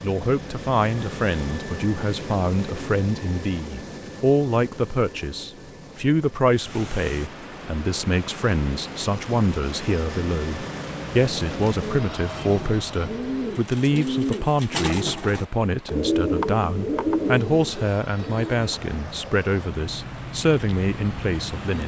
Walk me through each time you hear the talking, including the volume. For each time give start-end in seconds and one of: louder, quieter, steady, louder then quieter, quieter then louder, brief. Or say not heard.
0.0-21.8 steady.